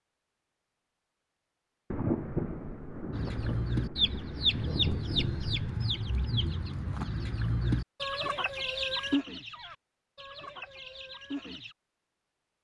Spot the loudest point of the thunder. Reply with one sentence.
The loudest moment of the thunder is at 2 seconds.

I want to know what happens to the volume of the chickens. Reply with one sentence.
The volume of the chickens goes down.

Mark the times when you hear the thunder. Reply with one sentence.
The thunder can be heard from 1.9 to 5.8 s.